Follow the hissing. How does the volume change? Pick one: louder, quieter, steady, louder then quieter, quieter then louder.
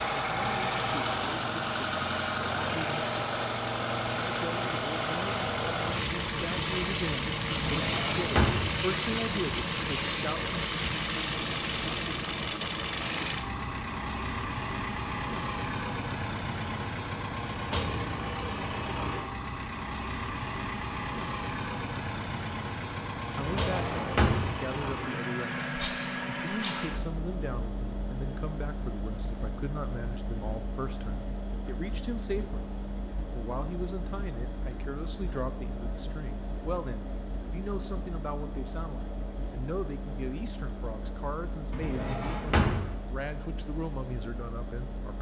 louder.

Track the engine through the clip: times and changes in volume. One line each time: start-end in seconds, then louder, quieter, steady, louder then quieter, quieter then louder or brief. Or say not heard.
0.0-45.1 quieter.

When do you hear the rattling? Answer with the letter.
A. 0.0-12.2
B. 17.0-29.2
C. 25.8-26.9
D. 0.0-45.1
C.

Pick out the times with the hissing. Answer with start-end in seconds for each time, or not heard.
0.0-12.2.